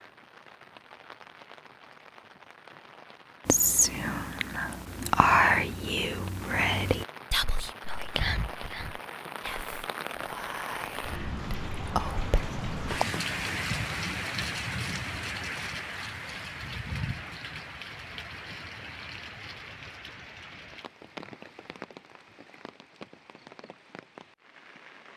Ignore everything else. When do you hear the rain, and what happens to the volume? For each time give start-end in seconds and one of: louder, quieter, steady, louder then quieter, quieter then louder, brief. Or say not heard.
0.0-25.1 louder then quieter.